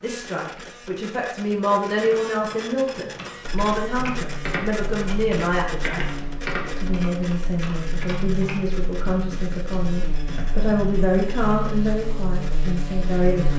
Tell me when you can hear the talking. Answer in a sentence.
You can hear the talking from 0.0 to 13.5 s.